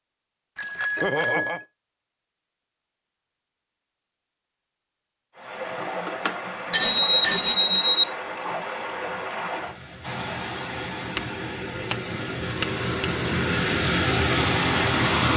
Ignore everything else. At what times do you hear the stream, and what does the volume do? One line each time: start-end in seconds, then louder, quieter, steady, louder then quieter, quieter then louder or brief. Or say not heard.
5.3-15.3 louder.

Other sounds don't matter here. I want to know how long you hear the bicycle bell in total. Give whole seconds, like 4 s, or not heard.
5 s.